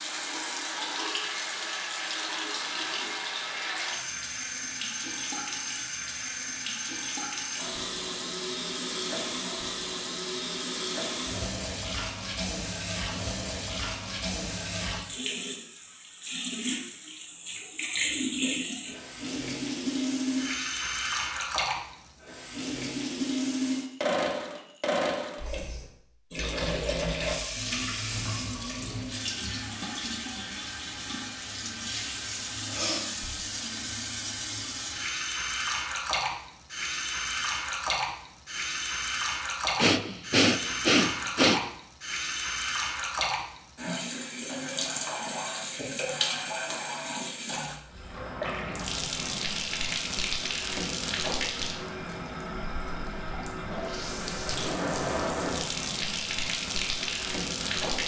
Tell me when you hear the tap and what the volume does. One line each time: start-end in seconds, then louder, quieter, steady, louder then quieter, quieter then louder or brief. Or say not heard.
0.0-58.0 steady.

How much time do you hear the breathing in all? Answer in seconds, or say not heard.
2 s.